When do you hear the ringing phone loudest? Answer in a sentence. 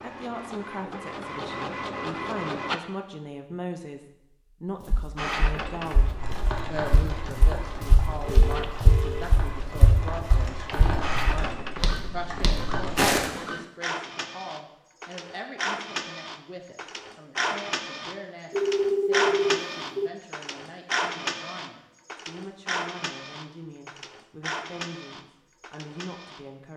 The loudest moment of the ringing phone is at 19 seconds.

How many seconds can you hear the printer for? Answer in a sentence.
The printer can be heard for 24 seconds in total.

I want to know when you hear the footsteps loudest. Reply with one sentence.
The loudest moment of the footsteps is at 13 seconds.